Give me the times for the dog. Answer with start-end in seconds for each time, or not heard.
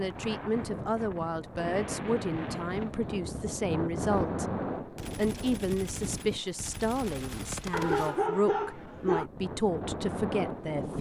7.7-9.2.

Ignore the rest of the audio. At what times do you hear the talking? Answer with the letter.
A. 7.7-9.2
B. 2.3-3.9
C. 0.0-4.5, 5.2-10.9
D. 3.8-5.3
C.